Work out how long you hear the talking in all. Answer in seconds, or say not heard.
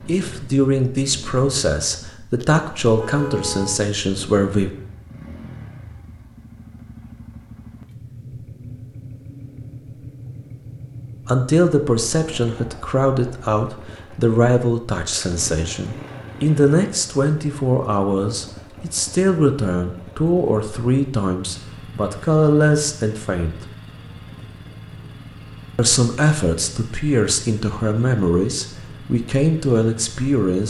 22 s.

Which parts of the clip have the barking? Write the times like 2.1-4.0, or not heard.
not heard.